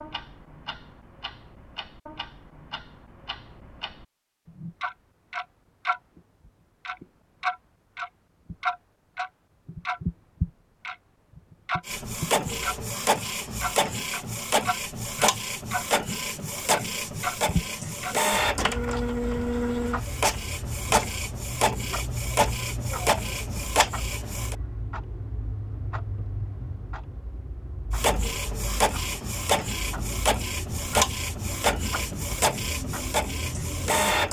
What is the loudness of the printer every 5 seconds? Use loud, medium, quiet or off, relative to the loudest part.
off, off, loud, loud, loud, loud, loud.